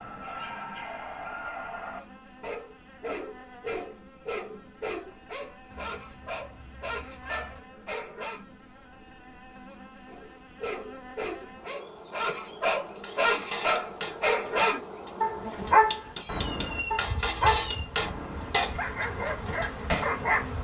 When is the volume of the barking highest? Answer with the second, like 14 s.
16 s.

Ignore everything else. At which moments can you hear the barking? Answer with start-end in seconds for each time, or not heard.
0.0-8.4, 10.1-20.6.